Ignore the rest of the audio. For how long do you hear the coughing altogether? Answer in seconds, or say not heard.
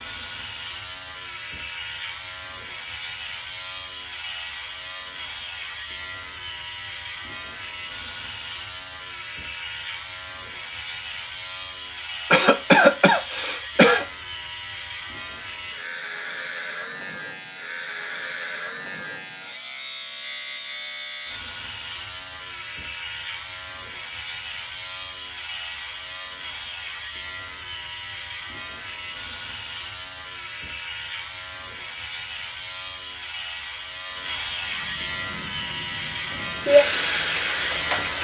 2 s.